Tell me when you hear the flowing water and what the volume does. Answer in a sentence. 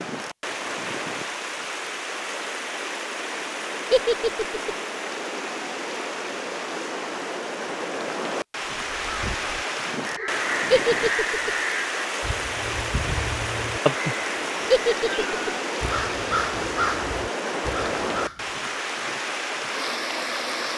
You can hear the flowing water from 0.0 to 20.7 s, at a steady volume.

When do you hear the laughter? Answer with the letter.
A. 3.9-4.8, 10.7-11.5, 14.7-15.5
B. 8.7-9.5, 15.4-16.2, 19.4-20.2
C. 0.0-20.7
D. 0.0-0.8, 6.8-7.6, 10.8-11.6
A.